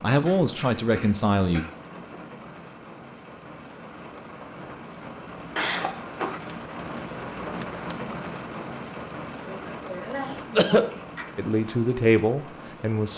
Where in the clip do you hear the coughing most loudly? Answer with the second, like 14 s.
11 s.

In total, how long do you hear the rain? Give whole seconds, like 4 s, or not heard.
13 s.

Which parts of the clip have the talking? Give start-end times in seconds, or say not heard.
0.0-1.6, 11.3-13.1.